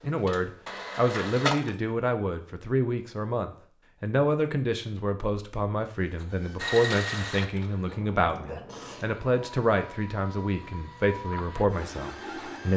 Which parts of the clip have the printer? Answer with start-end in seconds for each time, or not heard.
0.0-1.8, 6.1-12.7.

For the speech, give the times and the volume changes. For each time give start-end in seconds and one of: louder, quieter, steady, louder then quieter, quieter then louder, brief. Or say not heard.
0.0-12.7 steady.